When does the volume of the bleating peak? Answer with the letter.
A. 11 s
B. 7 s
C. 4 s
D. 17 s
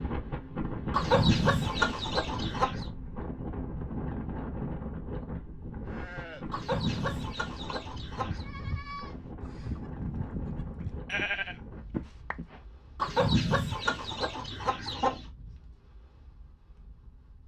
A.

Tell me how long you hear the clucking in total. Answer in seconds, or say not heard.
6 s.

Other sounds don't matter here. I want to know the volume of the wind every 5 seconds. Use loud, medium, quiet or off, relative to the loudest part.
loud, medium, medium, quiet.